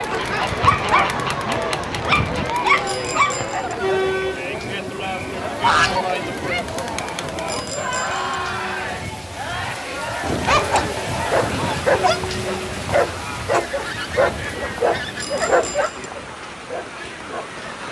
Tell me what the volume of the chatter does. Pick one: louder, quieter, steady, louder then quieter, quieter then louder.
quieter.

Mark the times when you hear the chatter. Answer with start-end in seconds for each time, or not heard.
0.0-17.8.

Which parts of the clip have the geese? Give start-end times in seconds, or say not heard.
0.1-2.5, 5.6-6.0, 10.2-11.8, 13.5-15.8.